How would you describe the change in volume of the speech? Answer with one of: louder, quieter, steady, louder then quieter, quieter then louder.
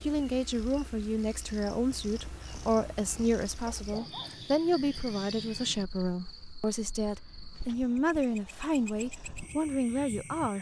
steady.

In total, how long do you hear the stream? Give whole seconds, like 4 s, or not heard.
not heard.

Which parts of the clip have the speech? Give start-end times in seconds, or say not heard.
0.0-10.5.